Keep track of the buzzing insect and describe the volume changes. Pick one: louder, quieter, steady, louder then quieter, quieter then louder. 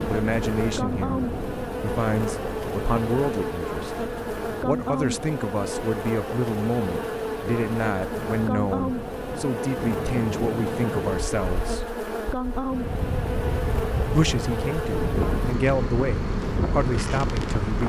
steady.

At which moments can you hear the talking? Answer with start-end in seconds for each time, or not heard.
0.1-11.9, 14.1-17.8.